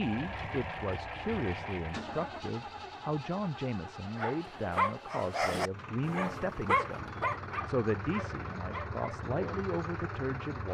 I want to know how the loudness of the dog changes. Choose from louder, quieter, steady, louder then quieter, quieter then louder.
quieter.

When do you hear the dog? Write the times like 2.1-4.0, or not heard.
4.0-9.2.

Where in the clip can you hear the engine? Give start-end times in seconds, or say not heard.
0.0-10.7.